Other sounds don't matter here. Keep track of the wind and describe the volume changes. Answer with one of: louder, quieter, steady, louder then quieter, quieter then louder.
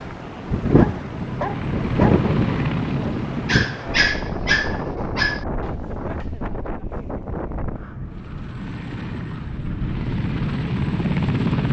quieter.